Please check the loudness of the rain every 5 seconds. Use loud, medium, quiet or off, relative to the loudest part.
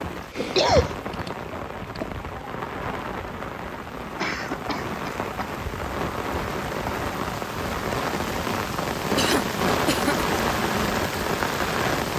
medium, loud, loud.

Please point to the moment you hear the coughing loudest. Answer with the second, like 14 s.
1 s.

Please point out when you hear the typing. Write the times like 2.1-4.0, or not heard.
0.0-2.2.